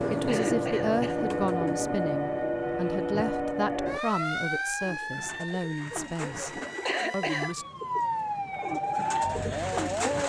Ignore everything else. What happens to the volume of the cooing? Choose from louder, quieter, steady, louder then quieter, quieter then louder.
quieter then louder.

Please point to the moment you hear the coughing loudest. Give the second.
7 s.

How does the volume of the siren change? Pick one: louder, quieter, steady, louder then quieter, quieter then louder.
quieter then louder.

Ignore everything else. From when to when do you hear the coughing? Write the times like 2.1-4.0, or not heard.
0.1-1.4, 6.7-7.5.